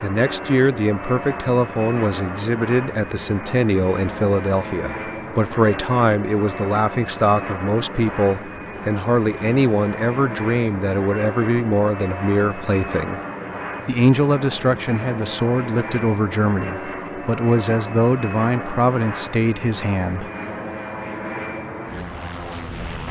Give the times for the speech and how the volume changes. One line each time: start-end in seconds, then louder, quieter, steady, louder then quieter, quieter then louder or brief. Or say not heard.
0.0-13.2 steady
13.8-20.3 steady.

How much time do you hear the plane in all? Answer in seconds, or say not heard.
23 s.